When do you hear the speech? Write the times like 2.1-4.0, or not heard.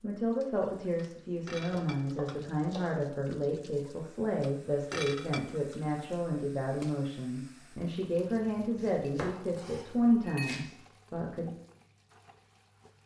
0.0-11.5.